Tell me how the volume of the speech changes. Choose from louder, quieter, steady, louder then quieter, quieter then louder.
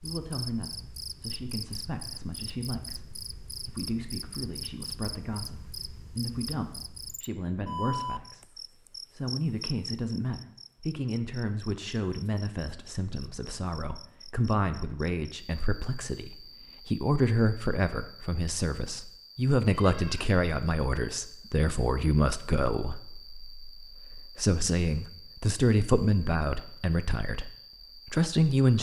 louder.